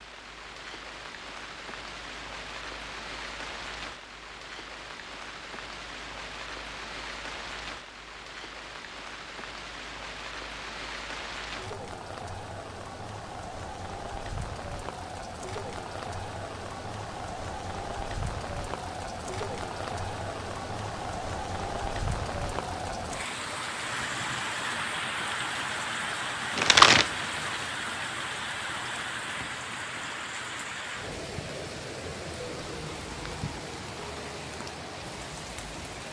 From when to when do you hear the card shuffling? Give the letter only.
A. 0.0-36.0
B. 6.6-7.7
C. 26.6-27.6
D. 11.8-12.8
C.